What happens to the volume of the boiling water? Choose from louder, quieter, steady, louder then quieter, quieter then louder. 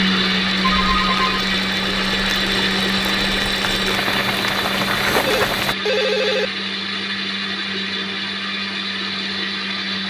louder.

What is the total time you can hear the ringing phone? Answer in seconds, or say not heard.
2 s.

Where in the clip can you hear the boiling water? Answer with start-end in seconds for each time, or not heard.
0.0-5.8.